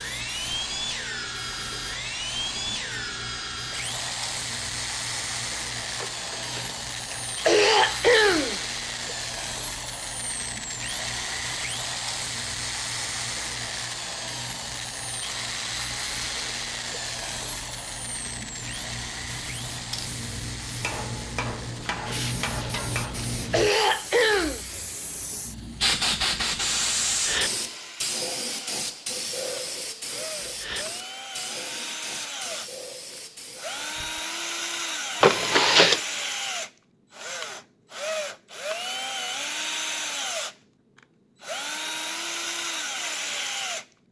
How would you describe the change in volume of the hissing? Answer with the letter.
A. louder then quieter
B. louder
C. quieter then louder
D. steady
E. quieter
B.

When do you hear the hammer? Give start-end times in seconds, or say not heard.
20.8-23.4.